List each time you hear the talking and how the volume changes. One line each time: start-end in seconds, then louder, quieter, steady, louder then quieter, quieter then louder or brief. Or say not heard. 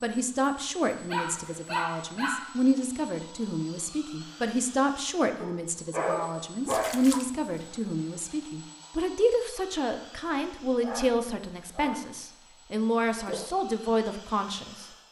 0.0-14.8 steady.